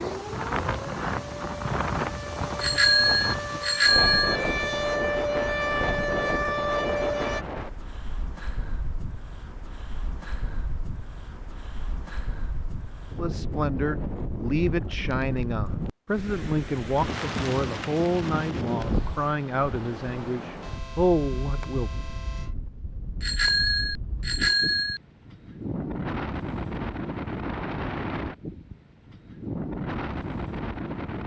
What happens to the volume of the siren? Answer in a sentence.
The volume of the siren goes up.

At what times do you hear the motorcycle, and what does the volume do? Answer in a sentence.
You can't hear the motorcycle here.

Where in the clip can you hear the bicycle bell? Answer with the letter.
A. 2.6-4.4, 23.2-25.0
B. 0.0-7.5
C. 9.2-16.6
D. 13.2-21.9
A.